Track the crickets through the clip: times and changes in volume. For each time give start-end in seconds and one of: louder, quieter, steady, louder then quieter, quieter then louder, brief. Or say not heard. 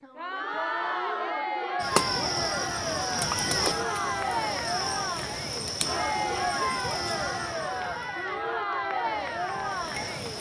1.8-10.3 quieter.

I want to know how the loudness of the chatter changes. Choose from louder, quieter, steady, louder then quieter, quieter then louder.
steady.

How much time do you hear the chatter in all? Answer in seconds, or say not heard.
10 s.